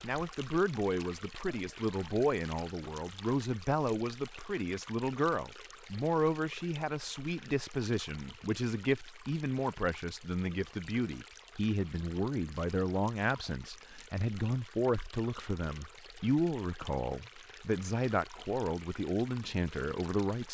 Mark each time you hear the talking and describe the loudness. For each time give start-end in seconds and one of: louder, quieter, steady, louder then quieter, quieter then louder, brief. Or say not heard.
0.0-20.4 steady.